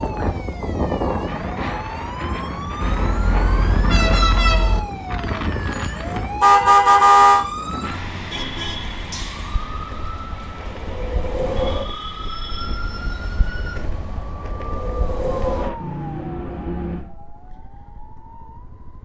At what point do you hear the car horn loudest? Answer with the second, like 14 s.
7 s.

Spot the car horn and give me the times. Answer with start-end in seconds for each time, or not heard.
2.8-4.8, 6.4-7.5, 15.8-17.1.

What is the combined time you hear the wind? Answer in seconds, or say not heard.
16 s.